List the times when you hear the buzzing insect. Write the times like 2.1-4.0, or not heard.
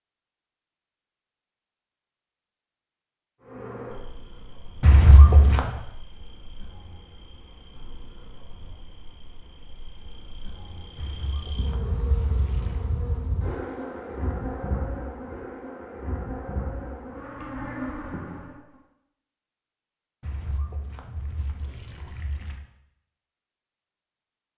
3.4-18.8.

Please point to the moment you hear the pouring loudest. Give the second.
5 s.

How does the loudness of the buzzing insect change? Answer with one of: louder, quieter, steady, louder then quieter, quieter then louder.
quieter then louder.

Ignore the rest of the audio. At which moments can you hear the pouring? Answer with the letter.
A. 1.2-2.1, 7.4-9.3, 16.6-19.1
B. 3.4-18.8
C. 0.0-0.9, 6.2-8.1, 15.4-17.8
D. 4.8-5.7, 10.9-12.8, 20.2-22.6
D.